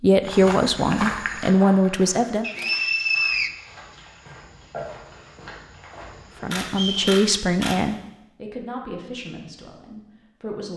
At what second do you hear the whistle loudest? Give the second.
3 s.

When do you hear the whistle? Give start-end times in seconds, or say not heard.
2.4-3.5, 6.7-7.2.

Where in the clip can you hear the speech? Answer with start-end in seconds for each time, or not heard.
0.0-2.5, 6.4-10.7.